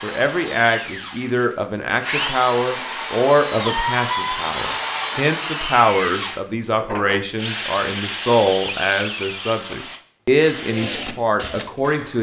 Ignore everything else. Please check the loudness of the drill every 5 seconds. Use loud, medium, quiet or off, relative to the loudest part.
loud, loud, medium.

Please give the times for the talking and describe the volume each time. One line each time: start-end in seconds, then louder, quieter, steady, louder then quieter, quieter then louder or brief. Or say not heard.
0.0-12.1 steady.